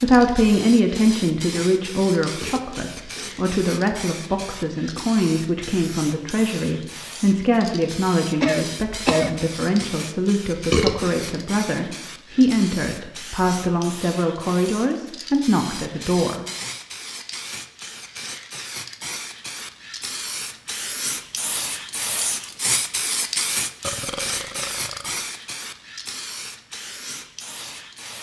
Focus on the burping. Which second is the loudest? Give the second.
11 s.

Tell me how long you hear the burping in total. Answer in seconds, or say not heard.
3 s.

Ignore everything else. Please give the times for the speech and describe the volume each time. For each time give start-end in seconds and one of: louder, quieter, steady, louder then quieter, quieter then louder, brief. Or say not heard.
0.0-16.4 steady.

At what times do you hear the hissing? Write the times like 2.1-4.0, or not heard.
0.0-28.1.